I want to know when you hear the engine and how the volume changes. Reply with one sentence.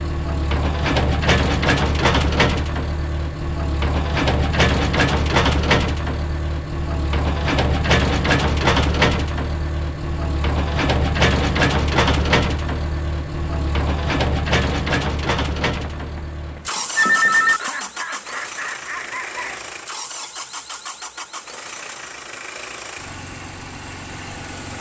The engine can be heard from 0.0 to 24.7 s, getting quieter.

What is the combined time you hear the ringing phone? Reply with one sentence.
You can hear the ringing phone for 2 seconds altogether.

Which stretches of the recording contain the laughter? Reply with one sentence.
You can hear the laughter from 17.6 to 19.6 s.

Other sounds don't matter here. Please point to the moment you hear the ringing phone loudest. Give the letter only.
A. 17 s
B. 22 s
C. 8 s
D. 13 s
A.